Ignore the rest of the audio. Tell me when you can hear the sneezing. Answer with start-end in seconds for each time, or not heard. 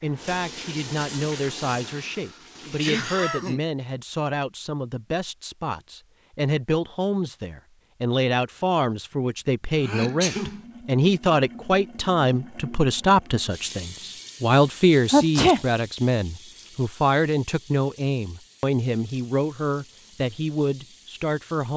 2.0-3.6, 9.8-10.6, 15.1-15.6.